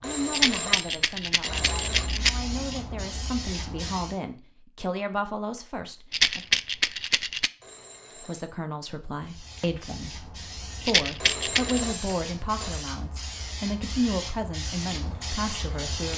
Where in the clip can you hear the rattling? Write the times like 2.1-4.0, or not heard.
0.3-2.3, 6.1-7.5, 10.8-11.8.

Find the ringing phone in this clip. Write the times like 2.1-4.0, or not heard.
0.0-2.1, 7.6-8.6, 11.2-12.8.